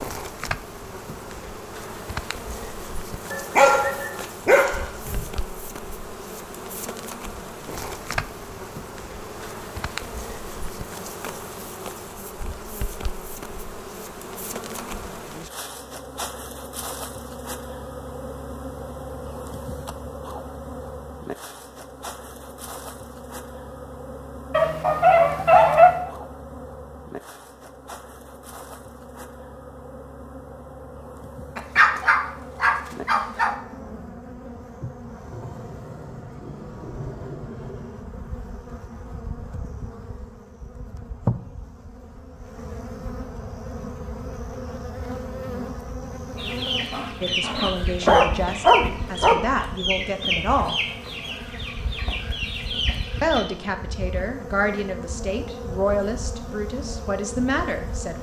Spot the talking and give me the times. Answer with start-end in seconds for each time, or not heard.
47.2-50.8, 53.2-58.1.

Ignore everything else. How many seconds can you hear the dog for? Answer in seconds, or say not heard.
8 s.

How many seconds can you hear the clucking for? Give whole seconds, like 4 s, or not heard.
7 s.